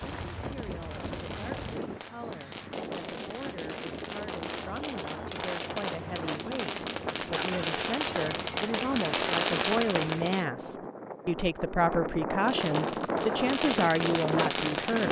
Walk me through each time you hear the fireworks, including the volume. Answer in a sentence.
The fireworks can be heard from 0.0 to 10.4 s, getting louder; and briefly from 12.4 to 15.0 s.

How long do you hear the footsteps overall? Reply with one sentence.
You can hear the footsteps for 2 seconds altogether.